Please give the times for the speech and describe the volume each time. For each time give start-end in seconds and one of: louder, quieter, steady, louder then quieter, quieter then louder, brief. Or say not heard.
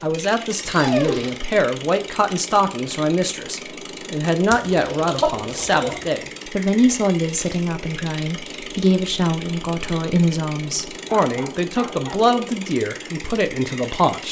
0.0-14.2 steady.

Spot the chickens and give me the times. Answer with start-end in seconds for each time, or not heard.
4.5-6.1.